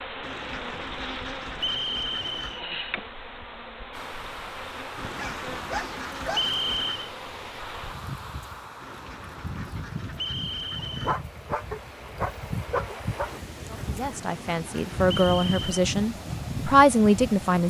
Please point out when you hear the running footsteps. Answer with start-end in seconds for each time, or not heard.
not heard.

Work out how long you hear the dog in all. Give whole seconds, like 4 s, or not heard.
4 s.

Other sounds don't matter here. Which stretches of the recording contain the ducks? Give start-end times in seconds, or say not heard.
0.2-2.6, 5.0-7.1, 8.8-11.2, 13.7-15.8.